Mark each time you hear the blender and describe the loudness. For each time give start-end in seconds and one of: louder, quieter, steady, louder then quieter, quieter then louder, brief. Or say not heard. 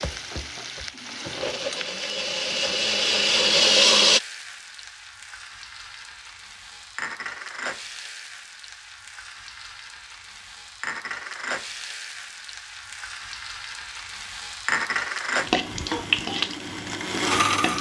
0.0-4.2 louder
15.4-17.7 brief.